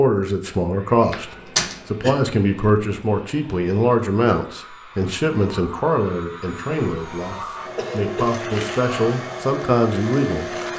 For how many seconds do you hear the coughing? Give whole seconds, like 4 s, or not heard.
2 s.